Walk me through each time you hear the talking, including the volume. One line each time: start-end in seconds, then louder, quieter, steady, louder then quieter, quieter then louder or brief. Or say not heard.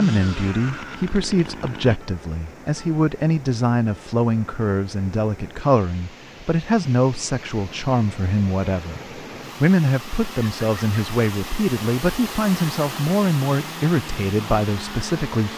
0.0-15.5 steady.